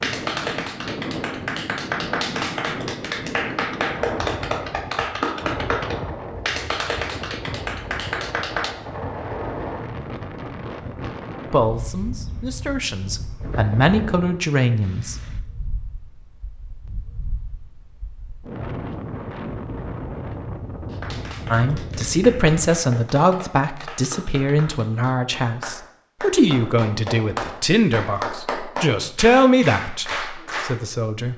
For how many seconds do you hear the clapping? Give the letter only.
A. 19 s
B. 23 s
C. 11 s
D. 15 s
A.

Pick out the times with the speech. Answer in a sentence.
You can hear the speech from 11.5 to 15.2 s and from 21.5 to 31.3 s.